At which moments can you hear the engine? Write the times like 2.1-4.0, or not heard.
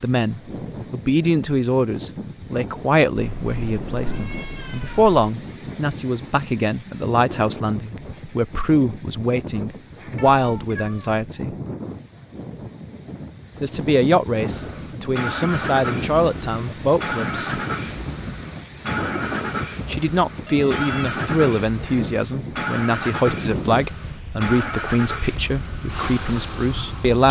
14.4-27.2.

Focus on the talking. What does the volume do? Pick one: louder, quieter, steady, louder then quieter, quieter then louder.
steady.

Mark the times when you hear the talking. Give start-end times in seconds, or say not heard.
0.0-11.6, 13.6-17.6, 19.9-27.2.